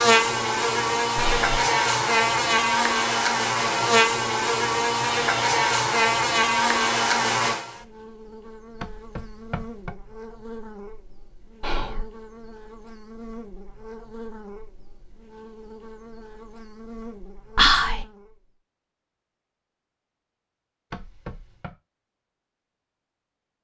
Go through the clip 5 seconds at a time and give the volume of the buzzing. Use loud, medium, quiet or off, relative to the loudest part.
loud, loud, quiet, quiet, off.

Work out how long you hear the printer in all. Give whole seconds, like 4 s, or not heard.
not heard.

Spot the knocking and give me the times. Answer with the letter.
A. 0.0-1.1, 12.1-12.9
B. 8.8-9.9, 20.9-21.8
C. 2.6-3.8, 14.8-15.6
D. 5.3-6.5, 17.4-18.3
B.